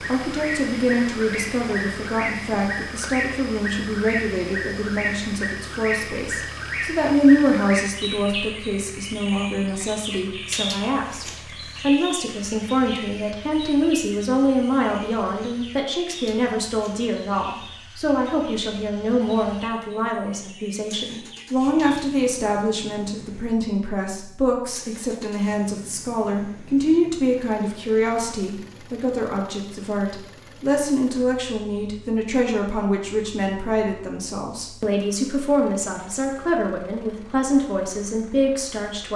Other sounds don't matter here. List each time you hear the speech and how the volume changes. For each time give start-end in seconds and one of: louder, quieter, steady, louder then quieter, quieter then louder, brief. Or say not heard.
0.0-39.1 steady.